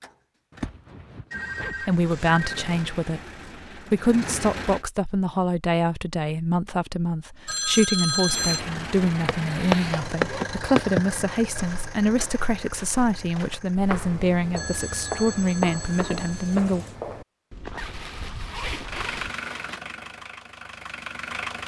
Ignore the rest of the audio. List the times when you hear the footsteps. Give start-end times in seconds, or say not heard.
9.2-19.3.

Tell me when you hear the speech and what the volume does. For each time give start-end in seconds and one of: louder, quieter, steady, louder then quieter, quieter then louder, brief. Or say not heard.
1.8-16.9 steady.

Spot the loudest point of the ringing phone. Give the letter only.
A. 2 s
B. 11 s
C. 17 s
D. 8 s
D.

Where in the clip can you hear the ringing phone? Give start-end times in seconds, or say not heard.
1.3-2.6, 7.5-8.7, 14.6-16.6.